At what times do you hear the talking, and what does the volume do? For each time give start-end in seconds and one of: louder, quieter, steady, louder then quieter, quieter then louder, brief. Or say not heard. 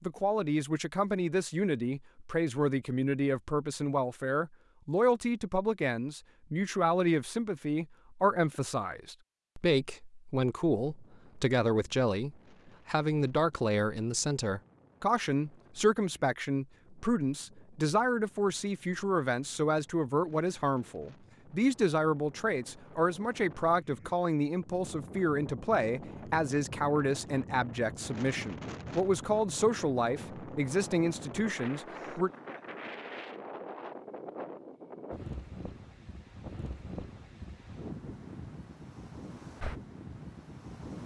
0.0-32.3 steady.